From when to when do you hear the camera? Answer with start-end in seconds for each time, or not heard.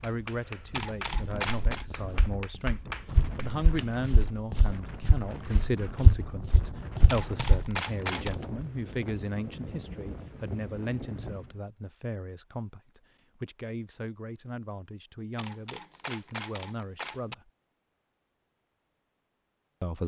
0.7-1.9, 7.0-8.3, 15.3-17.4.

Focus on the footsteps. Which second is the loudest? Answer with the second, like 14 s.
6 s.